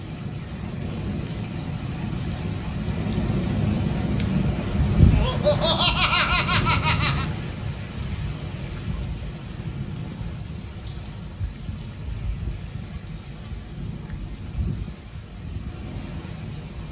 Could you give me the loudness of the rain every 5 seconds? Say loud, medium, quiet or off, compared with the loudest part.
loud, loud, medium, medium.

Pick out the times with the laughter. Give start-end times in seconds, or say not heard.
5.1-7.2.